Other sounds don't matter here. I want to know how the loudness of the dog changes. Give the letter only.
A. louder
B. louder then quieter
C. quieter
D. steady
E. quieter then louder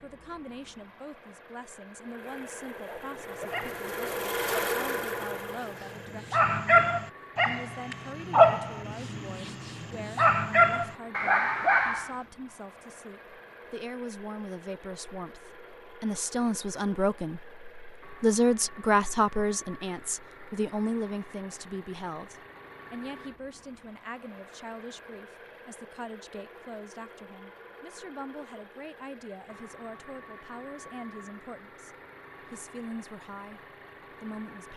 A.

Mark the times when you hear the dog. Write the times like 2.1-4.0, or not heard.
2.9-12.2.